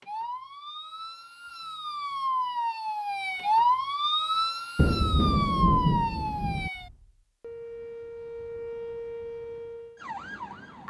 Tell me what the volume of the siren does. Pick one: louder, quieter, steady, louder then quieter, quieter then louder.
louder then quieter.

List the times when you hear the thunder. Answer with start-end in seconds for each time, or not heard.
4.8-6.7.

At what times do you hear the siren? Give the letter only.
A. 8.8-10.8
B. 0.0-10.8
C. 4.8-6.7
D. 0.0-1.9
B.